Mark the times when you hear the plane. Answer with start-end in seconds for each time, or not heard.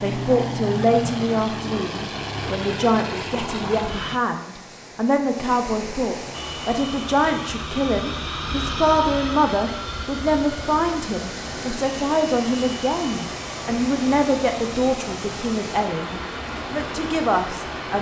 0.0-4.2, 6.3-17.9.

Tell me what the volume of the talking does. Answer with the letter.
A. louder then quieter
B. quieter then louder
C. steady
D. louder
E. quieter
C.